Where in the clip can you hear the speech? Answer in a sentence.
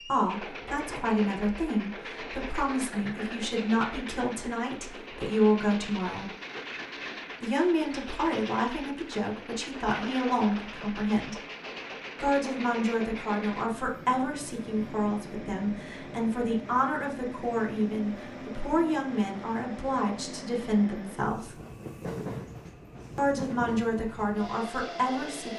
You can hear the speech from 0.1 to 6.3 s, from 7.4 to 11.3 s, from 12.2 to 21.6 s and from 23.1 to 25.5 s.